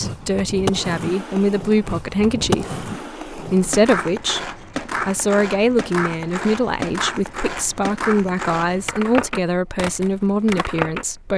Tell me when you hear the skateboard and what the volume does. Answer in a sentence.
You can hear the skateboard from 0.0 to 11.1 s, at a steady volume.